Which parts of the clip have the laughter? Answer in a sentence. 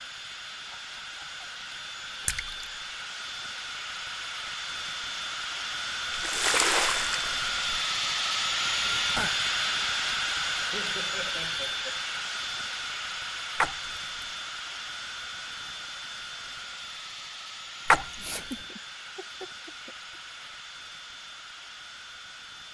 You can hear the laughter from 0.7 to 1.4 s, from 10.6 to 12.0 s and from 18.1 to 20.5 s.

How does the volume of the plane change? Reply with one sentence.
The volume of the plane goes up, then down.